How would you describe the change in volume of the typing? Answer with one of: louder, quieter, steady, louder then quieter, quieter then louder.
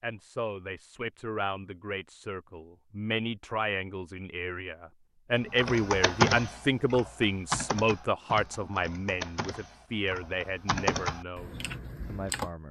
quieter then louder.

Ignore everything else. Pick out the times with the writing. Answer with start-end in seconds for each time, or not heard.
not heard.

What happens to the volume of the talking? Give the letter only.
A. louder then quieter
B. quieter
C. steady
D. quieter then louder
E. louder
A.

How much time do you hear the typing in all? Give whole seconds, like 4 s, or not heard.
7 s.